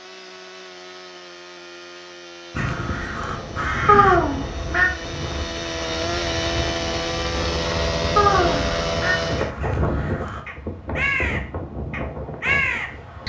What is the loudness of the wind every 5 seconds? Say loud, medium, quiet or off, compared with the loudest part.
medium, loud, loud.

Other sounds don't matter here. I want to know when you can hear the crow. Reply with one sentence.
You can hear the crow from 2.5 to 4.2 s and from 8.4 to 13.2 s.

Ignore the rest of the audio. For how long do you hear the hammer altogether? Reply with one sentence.
The hammer can't be heard in this clip.